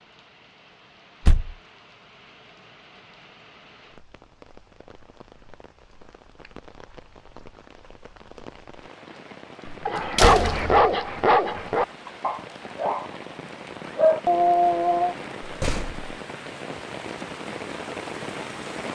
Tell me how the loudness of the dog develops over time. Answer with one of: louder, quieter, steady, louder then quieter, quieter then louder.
quieter then louder.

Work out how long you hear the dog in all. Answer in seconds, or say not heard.
5 s.